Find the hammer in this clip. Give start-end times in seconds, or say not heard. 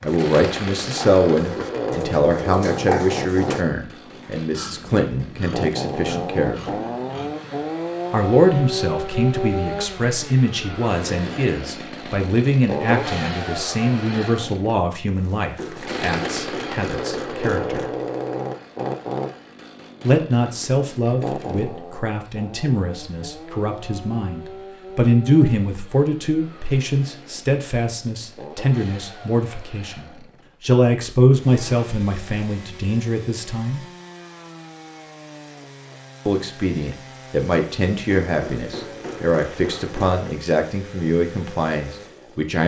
15.6-17.9, 38.2-40.4.